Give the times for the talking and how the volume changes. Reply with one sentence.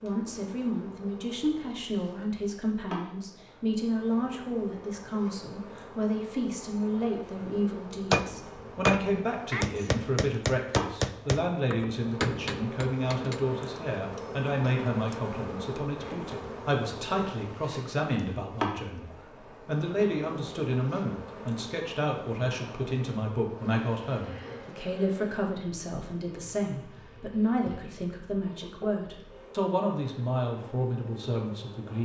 You can hear the talking from 0.0 to 31.9 s, at a steady volume.